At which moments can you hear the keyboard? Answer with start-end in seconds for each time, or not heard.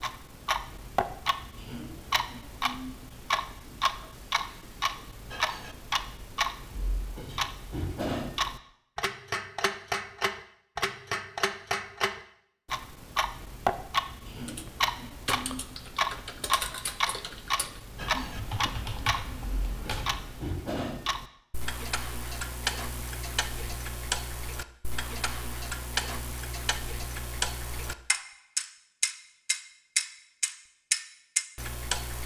14.4-20.5.